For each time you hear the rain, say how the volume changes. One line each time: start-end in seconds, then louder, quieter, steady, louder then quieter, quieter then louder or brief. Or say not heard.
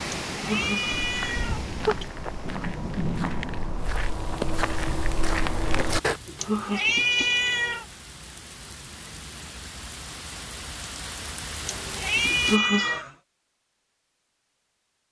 0.0-12.6 quieter then louder.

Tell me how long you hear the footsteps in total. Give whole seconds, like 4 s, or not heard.
5 s.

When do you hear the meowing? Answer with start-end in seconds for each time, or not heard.
0.3-2.1, 6.3-7.8, 11.7-13.1.